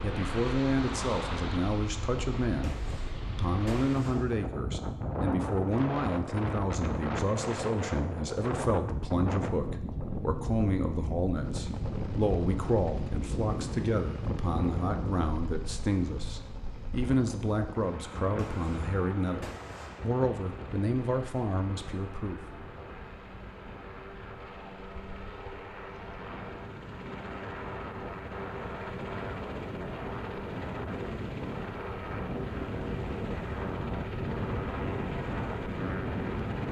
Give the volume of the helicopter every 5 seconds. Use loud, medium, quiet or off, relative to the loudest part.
off, off, loud, medium, medium, loud, loud, loud.